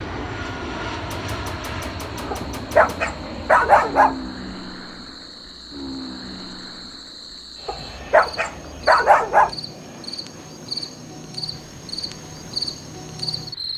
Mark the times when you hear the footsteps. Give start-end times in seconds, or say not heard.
not heard.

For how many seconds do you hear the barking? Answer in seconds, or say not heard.
4 s.